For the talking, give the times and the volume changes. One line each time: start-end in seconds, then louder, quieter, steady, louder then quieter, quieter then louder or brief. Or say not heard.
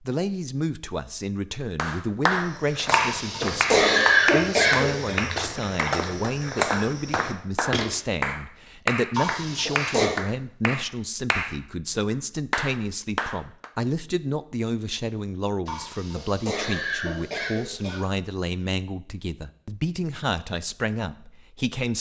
0.0-21.9 steady.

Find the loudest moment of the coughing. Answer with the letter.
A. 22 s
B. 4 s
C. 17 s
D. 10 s
B.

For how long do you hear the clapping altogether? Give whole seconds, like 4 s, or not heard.
12 s.